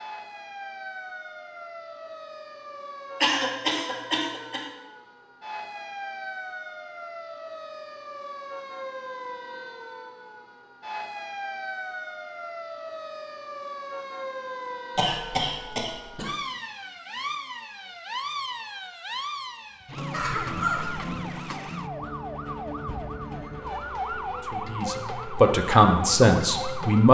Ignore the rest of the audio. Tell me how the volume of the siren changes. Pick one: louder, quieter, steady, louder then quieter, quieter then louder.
louder.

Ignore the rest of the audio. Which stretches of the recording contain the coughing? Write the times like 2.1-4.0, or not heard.
3.2-4.7, 14.9-16.3, 20.1-21.1.